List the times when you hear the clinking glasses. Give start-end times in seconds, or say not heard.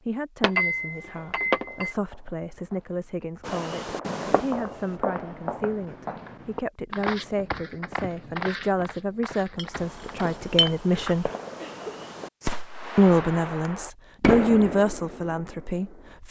0.4-1.9, 9.6-10.7.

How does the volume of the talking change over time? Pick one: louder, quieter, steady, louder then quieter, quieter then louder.
louder.